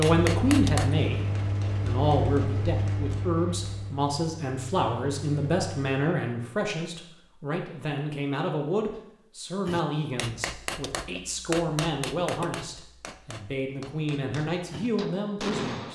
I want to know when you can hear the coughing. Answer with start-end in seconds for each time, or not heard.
not heard.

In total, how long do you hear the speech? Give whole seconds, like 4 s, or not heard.
16 s.